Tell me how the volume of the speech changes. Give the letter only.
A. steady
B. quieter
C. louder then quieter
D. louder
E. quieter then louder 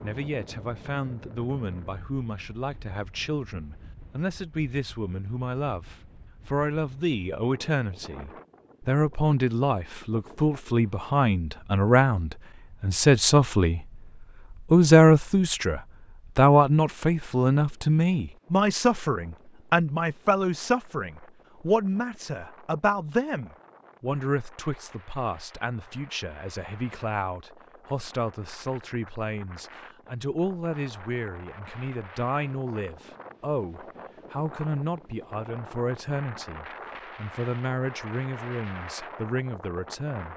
C.